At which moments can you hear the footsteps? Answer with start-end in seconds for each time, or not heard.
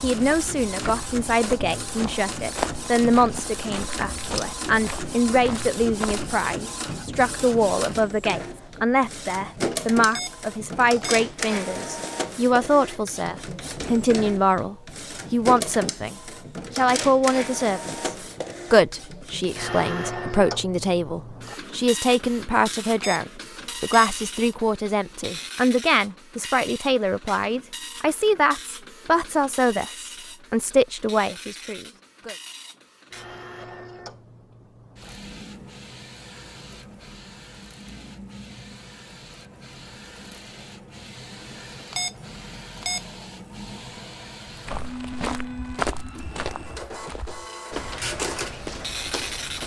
0.1-6.3, 44.6-49.6.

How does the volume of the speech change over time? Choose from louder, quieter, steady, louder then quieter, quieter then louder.
steady.